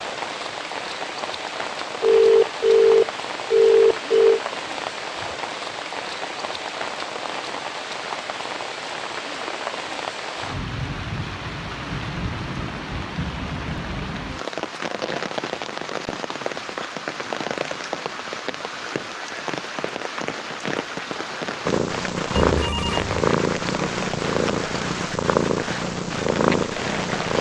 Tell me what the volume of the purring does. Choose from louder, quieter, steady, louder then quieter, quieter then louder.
steady.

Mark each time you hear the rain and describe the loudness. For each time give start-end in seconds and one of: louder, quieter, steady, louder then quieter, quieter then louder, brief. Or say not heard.
0.0-27.3 steady.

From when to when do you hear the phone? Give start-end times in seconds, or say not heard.
2.0-4.4, 22.4-23.1.